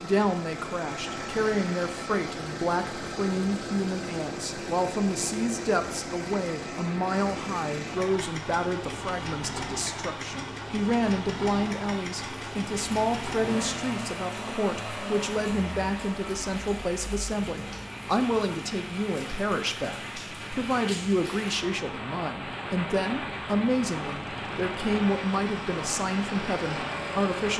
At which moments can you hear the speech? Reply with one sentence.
The speech can be heard from 0.0 to 27.5 s.